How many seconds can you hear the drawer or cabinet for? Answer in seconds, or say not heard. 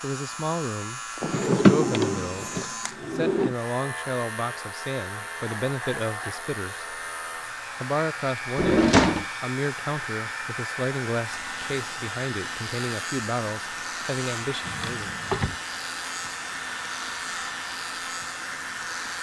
4 s.